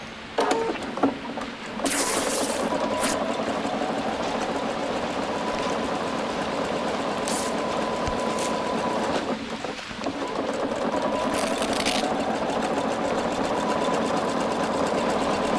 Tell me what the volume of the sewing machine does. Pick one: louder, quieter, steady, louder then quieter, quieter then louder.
steady.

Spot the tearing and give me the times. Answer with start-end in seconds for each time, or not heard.
1.9-3.1, 7.2-8.6, 11.2-12.1.